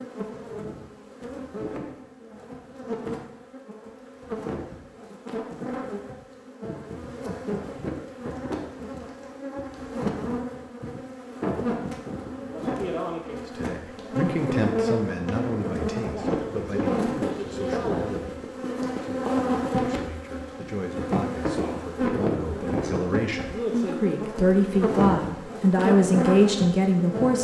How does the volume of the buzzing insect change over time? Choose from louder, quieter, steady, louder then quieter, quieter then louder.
louder.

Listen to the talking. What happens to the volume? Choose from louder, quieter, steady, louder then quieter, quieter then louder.
quieter then louder.